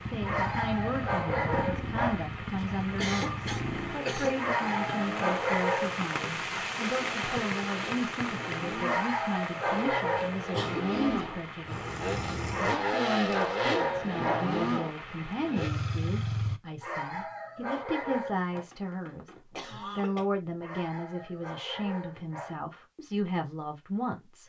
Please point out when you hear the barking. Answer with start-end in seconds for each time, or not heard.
0.2-2.2, 4.3-6.2, 8.8-10.3, 12.5-14.5, 16.8-18.6, 20.6-22.6.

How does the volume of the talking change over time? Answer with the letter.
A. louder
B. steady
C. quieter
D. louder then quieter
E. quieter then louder
B.